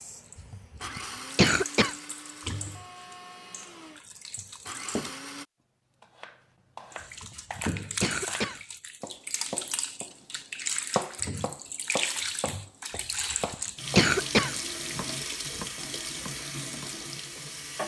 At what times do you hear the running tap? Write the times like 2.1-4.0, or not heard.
0.0-5.2, 6.9-17.8.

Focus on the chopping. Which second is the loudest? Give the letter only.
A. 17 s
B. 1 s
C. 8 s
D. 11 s
D.